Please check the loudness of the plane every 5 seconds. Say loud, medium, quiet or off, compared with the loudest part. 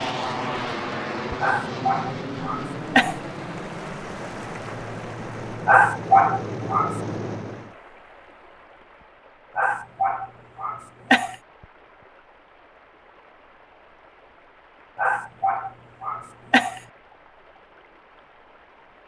loud, loud, off, off.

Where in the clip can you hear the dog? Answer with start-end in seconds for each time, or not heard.
1.4-3.1, 5.7-7.0, 9.6-11.3, 14.9-16.8.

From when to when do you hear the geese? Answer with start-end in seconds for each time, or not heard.
not heard.